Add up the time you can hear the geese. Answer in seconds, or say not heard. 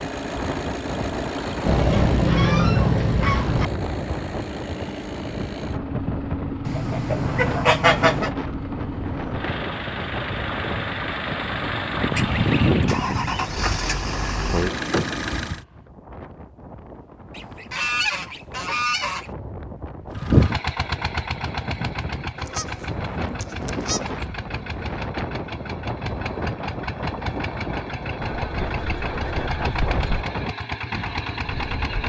11 s.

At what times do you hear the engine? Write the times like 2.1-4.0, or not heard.
0.0-15.6, 20.1-32.0.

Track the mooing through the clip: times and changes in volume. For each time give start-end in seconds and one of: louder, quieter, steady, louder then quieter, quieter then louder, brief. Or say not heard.
not heard.